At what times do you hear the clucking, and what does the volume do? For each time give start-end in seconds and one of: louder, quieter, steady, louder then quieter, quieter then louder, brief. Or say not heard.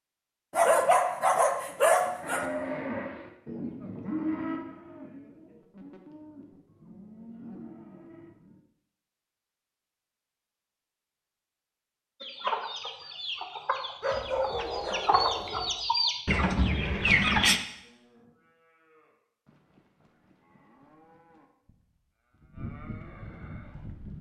12.2-17.6 louder.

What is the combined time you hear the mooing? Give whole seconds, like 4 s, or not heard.
13 s.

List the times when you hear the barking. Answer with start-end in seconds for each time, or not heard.
0.5-2.5, 14.0-15.7.